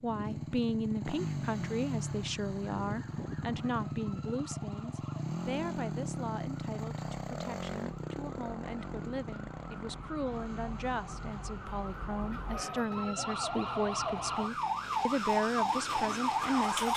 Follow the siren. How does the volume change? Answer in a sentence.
The loudness of the siren goes up.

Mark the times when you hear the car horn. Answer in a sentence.
The car horn can't be heard in this clip.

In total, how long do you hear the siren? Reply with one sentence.
You can hear the siren for 15 seconds altogether.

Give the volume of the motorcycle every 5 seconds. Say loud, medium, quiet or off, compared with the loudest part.
loud, loud, medium, quiet.